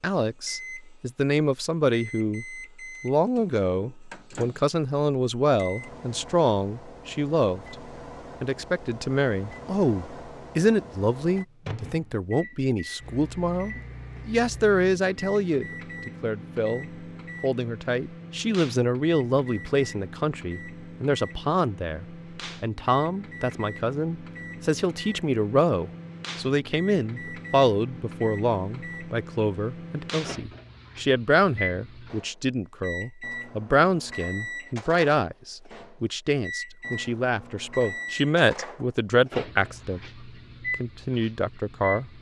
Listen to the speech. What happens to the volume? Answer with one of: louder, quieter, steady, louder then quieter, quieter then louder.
steady.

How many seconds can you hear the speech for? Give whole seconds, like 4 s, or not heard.
42 s.